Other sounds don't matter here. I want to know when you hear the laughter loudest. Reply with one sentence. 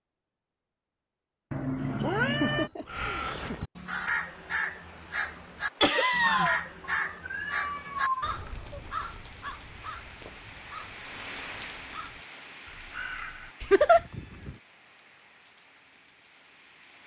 The loudest moment of the laughter is at 14 seconds.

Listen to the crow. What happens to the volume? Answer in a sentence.
The loudness of the crow goes down.